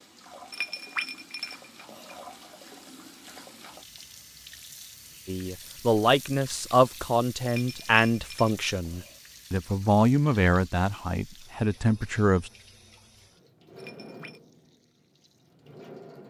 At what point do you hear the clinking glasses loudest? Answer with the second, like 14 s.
1 s.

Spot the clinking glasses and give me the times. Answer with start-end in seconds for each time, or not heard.
0.5-2.2, 7.5-9.2, 13.8-14.4.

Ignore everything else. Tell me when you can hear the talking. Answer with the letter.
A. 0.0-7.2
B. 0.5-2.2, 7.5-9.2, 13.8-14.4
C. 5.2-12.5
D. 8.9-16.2
C.